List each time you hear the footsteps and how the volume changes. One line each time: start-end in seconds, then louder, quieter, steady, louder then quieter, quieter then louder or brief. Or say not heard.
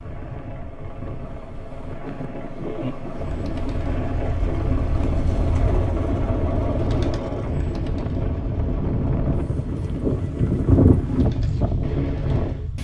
not heard.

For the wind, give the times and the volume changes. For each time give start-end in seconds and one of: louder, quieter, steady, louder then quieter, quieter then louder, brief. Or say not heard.
0.0-12.8 louder.